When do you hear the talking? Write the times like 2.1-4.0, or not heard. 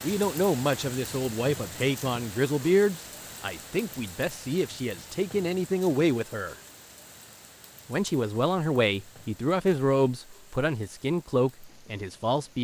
0.0-6.5, 7.8-12.6.